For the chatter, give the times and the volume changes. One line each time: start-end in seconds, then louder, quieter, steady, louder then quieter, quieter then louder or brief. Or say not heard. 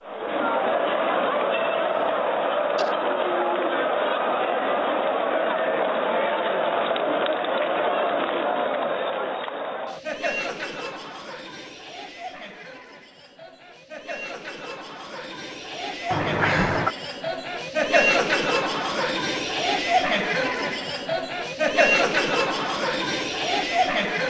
0.1-24.2 quieter then louder.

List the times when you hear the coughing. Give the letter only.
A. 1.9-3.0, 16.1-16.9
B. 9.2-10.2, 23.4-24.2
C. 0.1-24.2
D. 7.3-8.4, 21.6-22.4
A.